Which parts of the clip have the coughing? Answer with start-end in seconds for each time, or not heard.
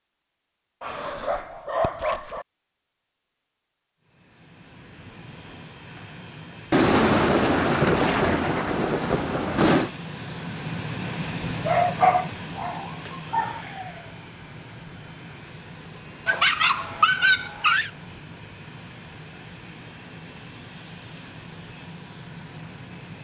not heard.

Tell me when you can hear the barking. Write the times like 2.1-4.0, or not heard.
0.8-2.5, 11.7-13.7, 16.2-17.9.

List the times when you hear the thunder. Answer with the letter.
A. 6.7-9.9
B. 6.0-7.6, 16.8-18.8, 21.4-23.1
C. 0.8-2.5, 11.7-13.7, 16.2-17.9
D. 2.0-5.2
A.